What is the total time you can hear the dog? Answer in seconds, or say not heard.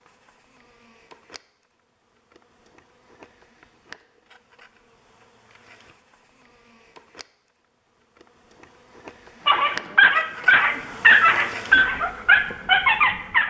4 s.